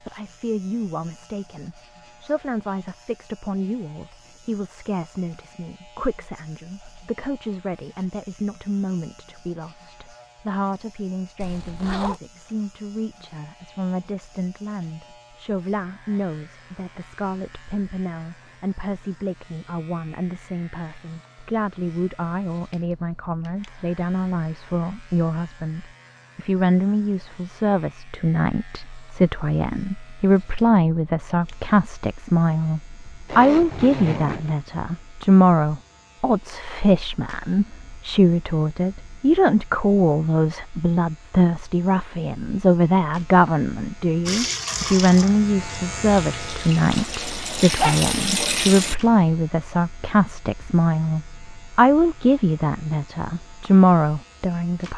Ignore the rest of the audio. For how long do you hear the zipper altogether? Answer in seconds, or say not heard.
3 s.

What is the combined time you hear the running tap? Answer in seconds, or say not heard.
5 s.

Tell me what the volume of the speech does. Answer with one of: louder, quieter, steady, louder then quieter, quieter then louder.
louder.